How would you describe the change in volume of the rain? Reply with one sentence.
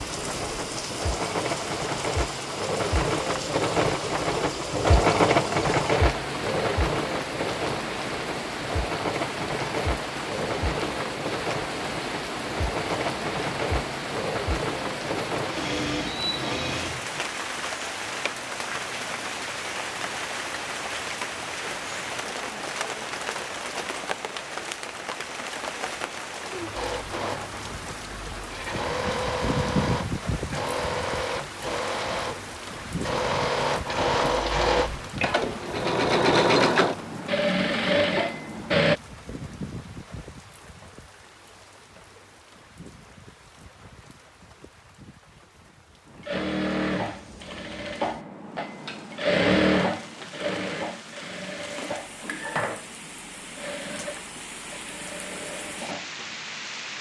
The loudness of the rain goes down.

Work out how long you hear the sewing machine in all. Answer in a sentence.
You can hear the sewing machine for 40 seconds altogether.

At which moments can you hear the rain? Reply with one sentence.
The rain can be heard from 0.0 to 56.9 s.